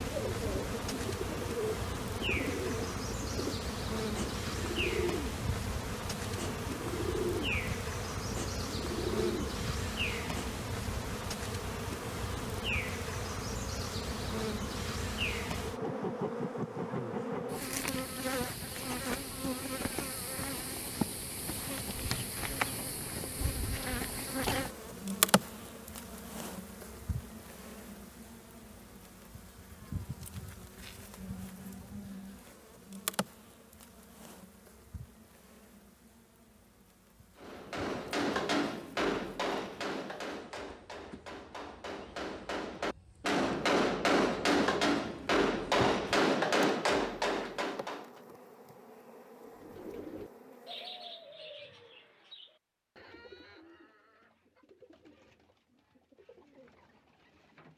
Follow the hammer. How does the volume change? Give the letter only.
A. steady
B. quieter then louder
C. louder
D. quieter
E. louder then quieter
B.